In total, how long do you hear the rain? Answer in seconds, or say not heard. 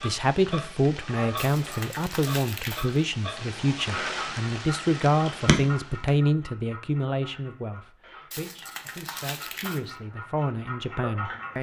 6 s.